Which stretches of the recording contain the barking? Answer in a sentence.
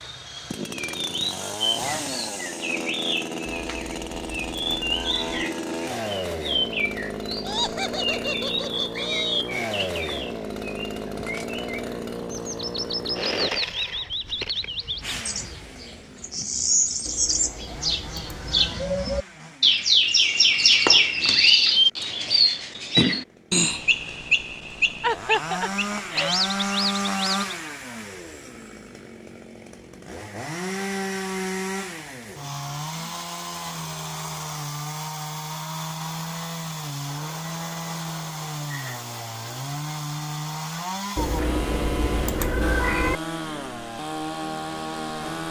The barking can't be heard in this clip.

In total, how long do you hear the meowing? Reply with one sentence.
You can hear the meowing for 6 seconds altogether.